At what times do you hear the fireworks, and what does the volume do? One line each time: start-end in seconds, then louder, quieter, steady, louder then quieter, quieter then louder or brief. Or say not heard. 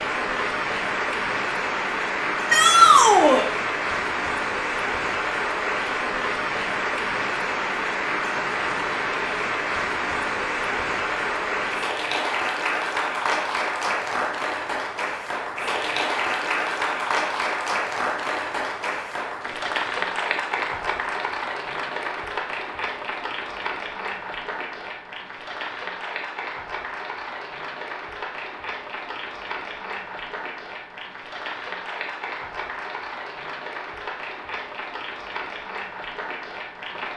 not heard.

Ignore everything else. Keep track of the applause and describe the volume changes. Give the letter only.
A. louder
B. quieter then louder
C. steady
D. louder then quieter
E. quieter
E.